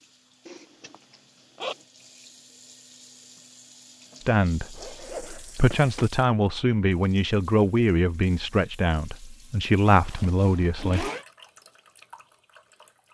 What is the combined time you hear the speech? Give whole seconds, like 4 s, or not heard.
7 s.